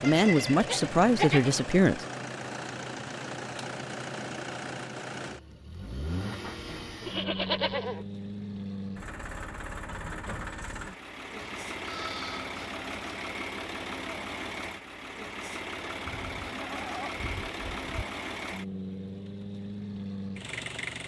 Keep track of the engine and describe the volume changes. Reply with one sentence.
The loudness of the engine stays about the same.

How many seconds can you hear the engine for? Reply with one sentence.
The engine can be heard for 21 seconds in total.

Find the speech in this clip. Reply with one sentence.
You can hear the speech from 0.0 to 2.0 s.